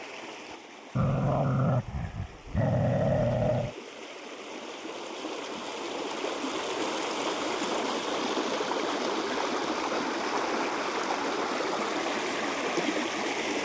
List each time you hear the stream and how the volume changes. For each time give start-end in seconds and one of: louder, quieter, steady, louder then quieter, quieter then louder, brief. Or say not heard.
0.0-13.5 louder.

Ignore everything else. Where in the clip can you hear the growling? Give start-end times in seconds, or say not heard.
0.9-3.8.